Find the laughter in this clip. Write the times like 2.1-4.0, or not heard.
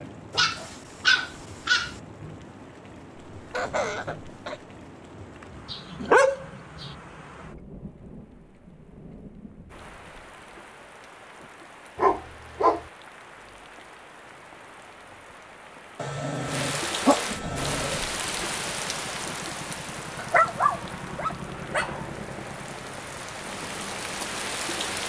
3.4-4.6.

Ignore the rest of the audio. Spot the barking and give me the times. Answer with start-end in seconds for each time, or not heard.
0.3-1.9, 5.7-6.9, 11.9-12.8, 15.9-18.0, 20.1-22.1.